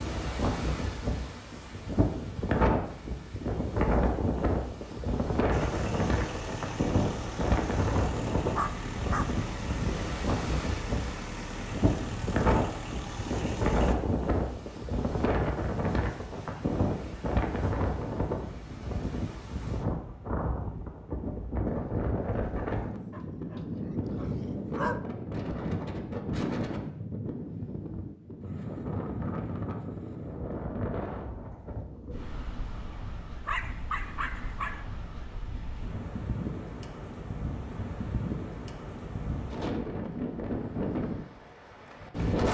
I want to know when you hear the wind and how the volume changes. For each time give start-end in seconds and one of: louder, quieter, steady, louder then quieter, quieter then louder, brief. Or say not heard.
0.0-42.4 quieter.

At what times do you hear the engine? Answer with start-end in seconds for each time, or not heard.
5.5-13.9.